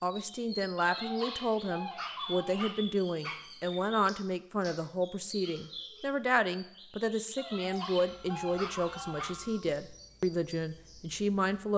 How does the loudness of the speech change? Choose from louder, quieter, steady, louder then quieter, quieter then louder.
steady.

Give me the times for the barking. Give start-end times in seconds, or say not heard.
0.8-3.5, 7.3-9.3.